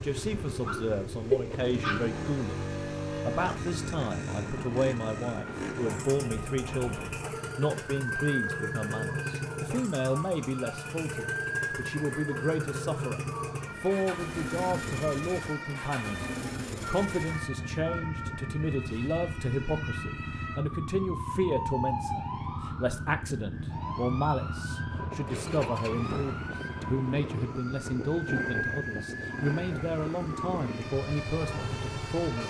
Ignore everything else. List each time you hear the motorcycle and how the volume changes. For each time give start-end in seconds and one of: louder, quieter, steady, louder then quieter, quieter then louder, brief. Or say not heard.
0.0-32.4 steady.